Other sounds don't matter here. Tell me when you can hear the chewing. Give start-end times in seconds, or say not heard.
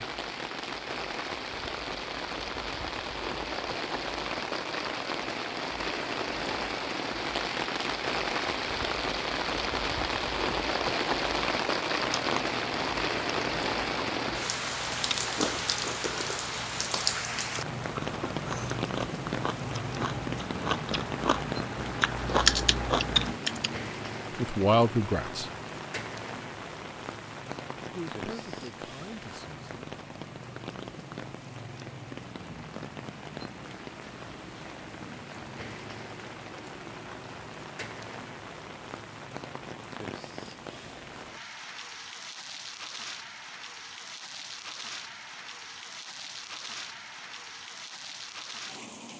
12.0-23.4.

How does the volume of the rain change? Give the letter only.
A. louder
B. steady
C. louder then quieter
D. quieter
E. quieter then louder
D.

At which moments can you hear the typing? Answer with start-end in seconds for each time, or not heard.
22.2-23.8.